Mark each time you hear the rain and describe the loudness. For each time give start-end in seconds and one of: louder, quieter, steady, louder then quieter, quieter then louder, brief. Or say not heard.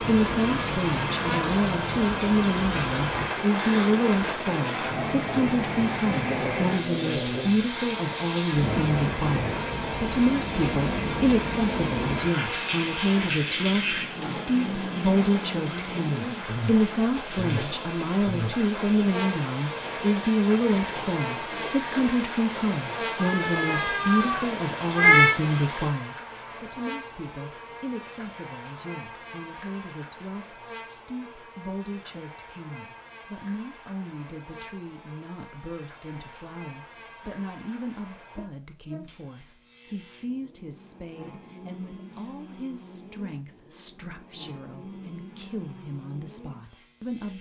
0.0-25.9 quieter.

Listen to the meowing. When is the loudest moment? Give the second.
25 s.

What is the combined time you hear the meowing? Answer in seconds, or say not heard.
2 s.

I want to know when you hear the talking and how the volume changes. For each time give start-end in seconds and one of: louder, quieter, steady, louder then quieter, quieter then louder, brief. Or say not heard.
0.0-47.3 quieter.